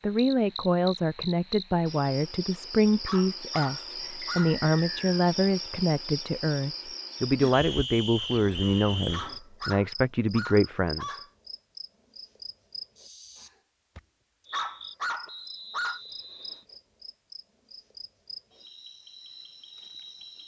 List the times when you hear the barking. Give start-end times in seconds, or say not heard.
3.0-4.6, 9.1-11.3, 14.5-16.0.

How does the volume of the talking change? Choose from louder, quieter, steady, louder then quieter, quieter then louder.
steady.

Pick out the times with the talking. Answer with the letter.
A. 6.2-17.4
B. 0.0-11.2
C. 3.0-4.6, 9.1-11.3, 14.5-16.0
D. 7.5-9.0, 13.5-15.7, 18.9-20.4
B.